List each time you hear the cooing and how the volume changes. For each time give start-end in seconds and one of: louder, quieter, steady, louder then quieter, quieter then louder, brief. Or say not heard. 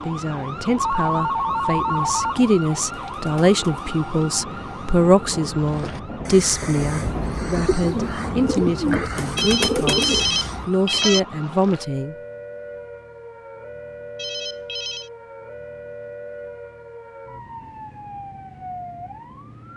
3.1-10.7 louder.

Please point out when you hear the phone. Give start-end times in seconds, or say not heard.
0.8-2.5, 9.3-11.2, 14.2-15.1.